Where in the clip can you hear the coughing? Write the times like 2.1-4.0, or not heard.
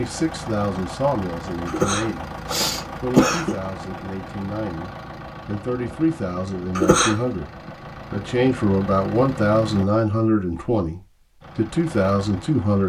1.6-3.5, 6.8-7.2.